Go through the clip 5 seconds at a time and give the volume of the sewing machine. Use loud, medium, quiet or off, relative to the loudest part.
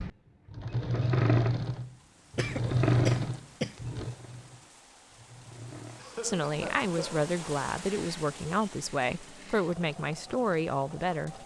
loud, quiet, quiet.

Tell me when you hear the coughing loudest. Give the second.
3 s.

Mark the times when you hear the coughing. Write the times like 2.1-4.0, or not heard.
2.4-3.8, 6.0-7.3.